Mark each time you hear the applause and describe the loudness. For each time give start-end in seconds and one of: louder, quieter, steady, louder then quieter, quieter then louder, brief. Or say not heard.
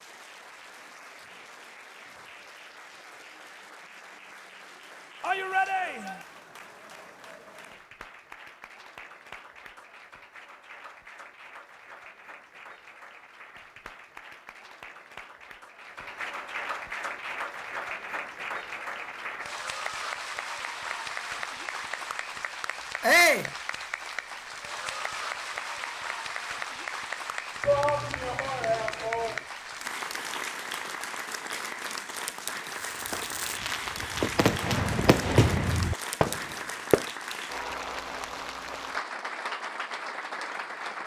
0.0-41.0 louder.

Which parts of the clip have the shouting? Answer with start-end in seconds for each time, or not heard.
5.2-6.2, 23.0-23.5, 27.6-29.4.